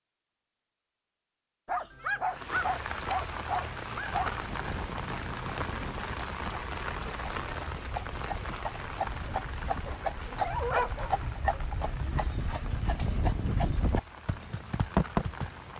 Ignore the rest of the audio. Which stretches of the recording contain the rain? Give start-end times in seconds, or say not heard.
2.2-15.7.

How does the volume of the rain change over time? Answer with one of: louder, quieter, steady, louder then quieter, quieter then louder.
quieter.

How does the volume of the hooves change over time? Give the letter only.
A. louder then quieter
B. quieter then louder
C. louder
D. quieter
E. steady
C.